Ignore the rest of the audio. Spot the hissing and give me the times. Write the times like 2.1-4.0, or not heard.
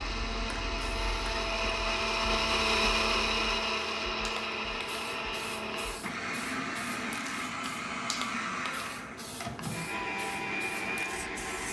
0.0-11.6.